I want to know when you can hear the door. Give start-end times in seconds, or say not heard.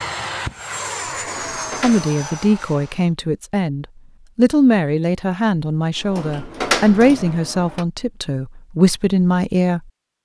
1.1-2.0, 6.0-7.8.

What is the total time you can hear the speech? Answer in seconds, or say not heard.
8 s.